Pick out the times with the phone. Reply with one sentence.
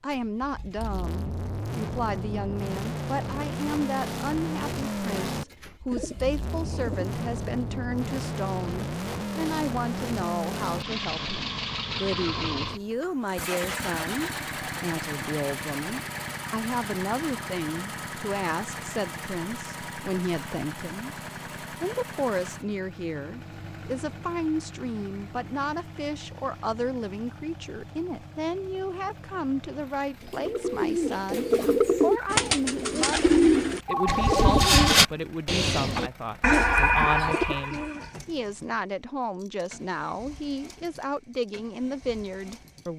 The phone can be heard from 33.9 to 35.1 s.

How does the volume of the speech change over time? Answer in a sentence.
The volume of the speech stays about the same.